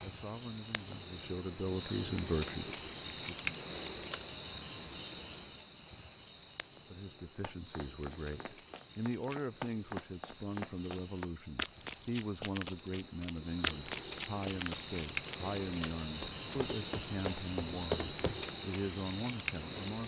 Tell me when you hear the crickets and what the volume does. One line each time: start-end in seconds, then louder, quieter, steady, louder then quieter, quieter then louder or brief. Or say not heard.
0.0-20.0 quieter then louder.